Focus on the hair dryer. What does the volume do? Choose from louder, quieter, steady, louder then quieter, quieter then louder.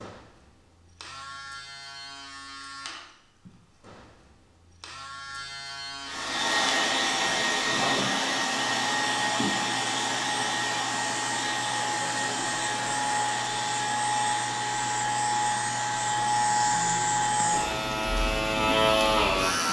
quieter.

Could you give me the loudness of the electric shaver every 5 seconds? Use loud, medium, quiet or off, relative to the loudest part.
quiet, medium, medium, loud.